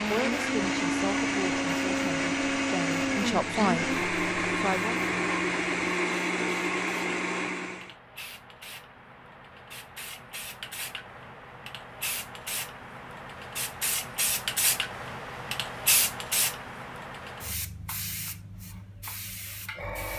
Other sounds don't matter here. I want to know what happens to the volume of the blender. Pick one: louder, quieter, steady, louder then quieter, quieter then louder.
steady.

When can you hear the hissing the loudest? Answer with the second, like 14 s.
16 s.